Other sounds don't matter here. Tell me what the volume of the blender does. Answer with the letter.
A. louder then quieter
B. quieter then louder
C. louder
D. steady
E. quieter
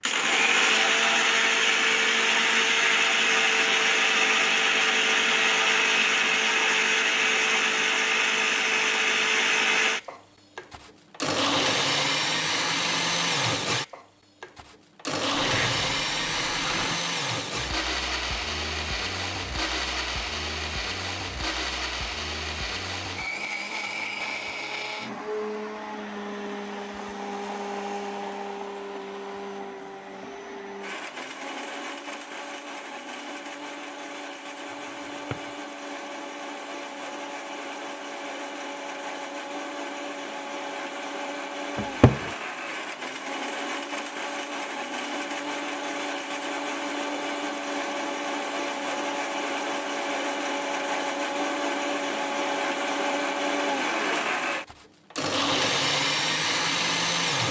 B.